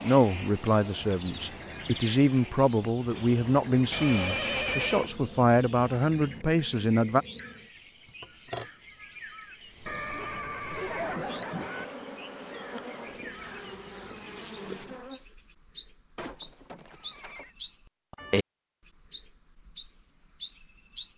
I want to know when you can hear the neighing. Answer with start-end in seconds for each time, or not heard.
3.9-5.1, 9.8-11.8, 16.1-17.6.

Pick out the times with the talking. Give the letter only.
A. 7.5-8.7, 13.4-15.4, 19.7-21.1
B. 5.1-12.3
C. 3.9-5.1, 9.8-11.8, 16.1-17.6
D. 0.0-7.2
D.